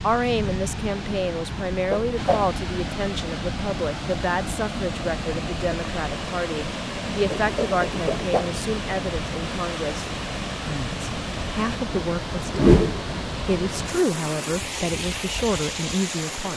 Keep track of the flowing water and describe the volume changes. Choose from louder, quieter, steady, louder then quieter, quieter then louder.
steady.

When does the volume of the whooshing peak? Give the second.
13 s.